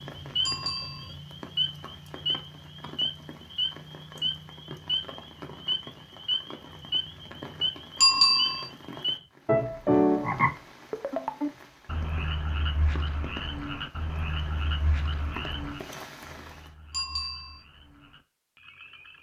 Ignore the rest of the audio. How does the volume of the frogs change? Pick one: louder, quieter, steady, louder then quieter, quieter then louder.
louder then quieter.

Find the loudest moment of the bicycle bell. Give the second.
8 s.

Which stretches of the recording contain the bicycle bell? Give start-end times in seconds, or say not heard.
0.5-1.1, 8.0-8.7, 16.9-17.6.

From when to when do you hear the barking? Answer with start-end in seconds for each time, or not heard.
not heard.